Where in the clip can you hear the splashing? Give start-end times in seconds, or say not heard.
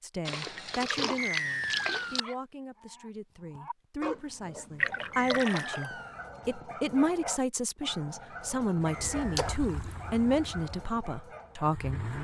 0.2-2.2, 4.8-5.9, 9.3-9.9.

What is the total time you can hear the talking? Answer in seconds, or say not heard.
12 s.